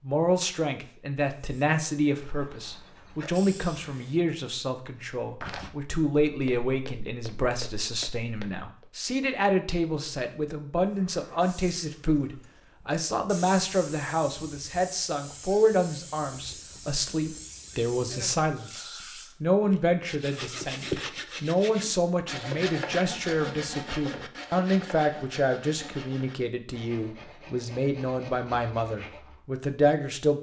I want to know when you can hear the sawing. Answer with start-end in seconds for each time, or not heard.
20.1-29.4.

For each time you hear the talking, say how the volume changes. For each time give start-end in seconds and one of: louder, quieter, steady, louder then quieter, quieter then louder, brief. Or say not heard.
0.0-30.3 steady.